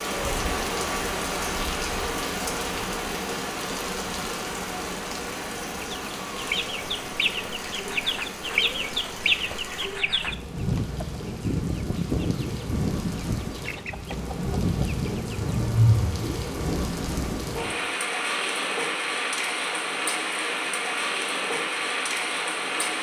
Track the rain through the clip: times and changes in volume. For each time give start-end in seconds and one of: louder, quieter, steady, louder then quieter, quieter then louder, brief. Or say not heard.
0.0-22.9 quieter then louder.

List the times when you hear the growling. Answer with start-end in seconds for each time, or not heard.
15.3-16.2.